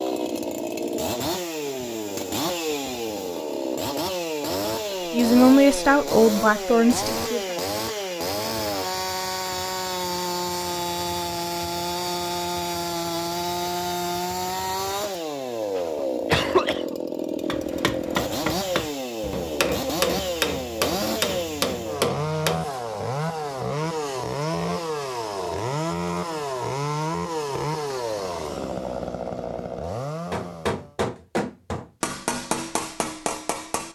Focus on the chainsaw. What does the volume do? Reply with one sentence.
The loudness of the chainsaw stays about the same.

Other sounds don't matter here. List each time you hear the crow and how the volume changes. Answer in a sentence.
You can't hear the crow here.